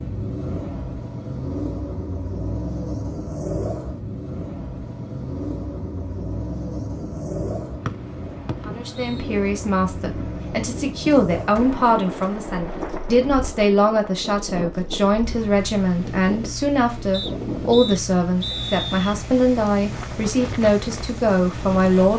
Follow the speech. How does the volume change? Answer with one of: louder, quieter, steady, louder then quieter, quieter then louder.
steady.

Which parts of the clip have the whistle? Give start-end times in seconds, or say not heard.
7.8-9.2, 17.1-19.1.